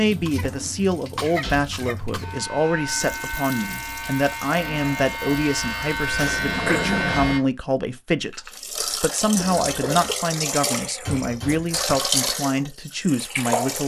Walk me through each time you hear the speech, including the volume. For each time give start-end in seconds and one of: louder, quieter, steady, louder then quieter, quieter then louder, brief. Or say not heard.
0.0-13.8 steady.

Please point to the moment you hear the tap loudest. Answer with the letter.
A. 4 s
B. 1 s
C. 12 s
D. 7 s
C.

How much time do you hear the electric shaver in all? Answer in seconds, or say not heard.
5 s.